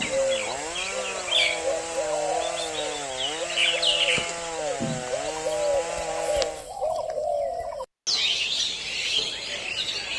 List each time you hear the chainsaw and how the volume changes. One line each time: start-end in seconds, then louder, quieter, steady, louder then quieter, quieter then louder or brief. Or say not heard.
0.0-6.7 steady.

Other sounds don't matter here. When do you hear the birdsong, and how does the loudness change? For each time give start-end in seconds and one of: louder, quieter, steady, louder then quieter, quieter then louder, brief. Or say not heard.
0.0-10.1 steady.